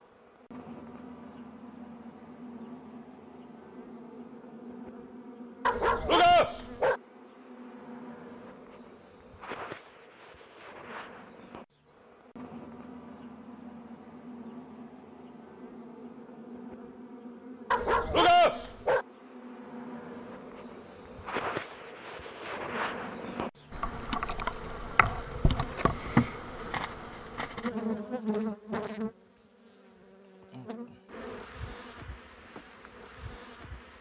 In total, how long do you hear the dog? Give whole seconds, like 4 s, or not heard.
3 s.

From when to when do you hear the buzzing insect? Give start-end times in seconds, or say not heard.
0.0-33.9.